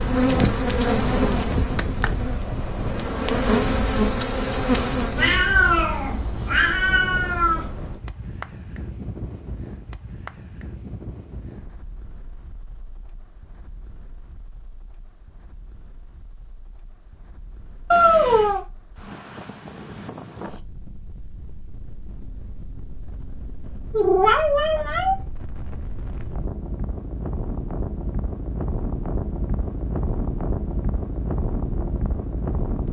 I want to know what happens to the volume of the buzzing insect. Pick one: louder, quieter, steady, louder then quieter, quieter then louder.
quieter then louder.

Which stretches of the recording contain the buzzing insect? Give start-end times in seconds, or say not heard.
0.0-5.5.